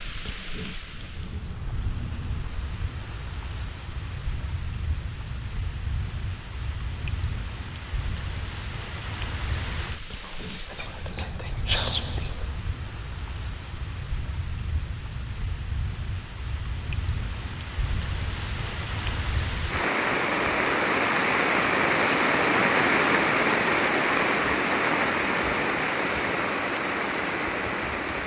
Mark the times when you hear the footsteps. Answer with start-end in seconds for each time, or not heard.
not heard.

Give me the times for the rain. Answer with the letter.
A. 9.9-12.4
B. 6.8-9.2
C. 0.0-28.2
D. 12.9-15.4
C.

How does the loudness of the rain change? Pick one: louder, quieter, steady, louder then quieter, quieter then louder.
louder.